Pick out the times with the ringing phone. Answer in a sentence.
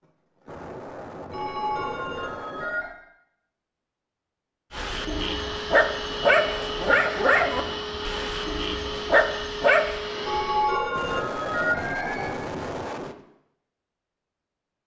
You can hear the ringing phone from 1.3 to 3.0 s and from 10.2 to 12.3 s.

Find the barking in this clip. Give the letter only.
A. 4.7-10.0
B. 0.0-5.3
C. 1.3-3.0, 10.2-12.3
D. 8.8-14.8
A.